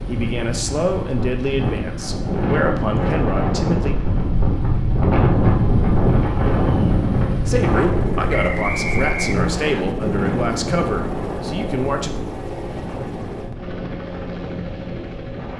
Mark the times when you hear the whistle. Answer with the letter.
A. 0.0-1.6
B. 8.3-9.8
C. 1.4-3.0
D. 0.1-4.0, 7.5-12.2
B.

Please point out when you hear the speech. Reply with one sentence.
You can hear the speech from 0.1 to 4.0 s and from 7.5 to 12.2 s.